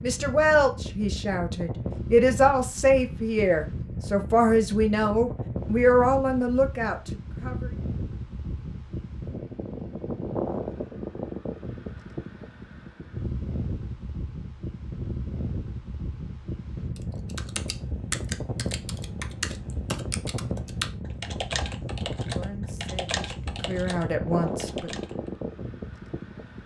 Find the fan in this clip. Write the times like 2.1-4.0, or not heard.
0.0-26.6.